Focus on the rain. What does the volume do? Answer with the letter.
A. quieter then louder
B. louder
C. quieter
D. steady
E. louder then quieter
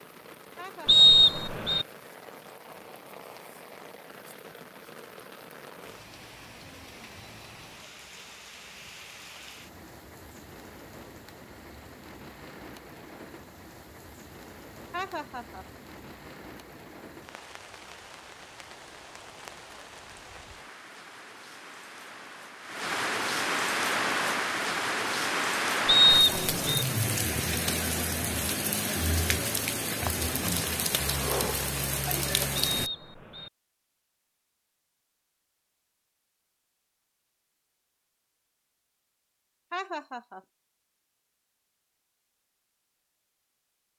B.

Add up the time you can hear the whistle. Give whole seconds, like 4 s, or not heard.
3 s.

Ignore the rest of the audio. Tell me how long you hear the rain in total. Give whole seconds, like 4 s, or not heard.
33 s.